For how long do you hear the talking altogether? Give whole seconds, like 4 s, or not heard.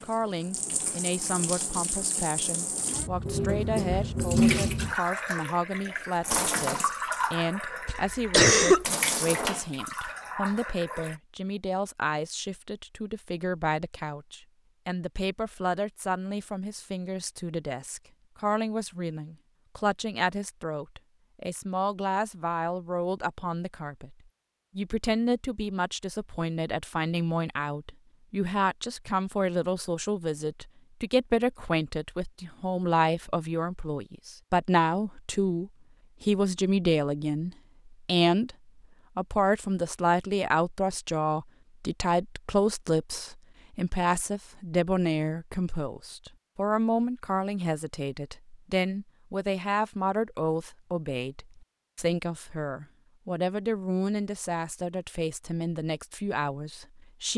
56 s.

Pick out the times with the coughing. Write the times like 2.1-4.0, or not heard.
7.8-8.8.